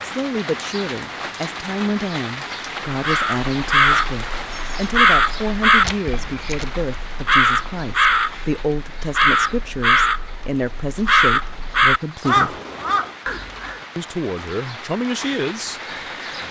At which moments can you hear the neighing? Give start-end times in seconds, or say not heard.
5.8-6.7.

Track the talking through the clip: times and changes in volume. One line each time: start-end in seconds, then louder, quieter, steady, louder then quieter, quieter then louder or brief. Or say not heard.
0.0-12.6 steady
13.9-15.8 brief.